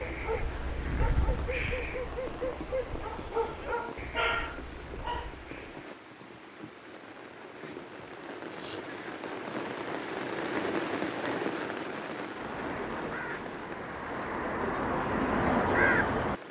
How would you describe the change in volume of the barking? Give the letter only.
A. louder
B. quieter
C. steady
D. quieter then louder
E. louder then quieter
A.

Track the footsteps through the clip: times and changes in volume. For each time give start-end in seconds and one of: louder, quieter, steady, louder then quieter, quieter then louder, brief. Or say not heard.
not heard.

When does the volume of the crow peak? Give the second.
16 s.